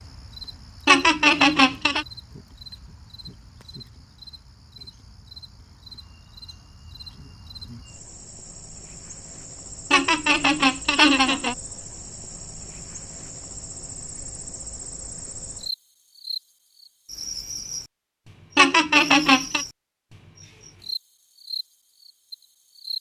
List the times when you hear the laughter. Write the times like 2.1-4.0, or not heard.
0.8-2.0, 9.9-11.6, 18.6-19.6.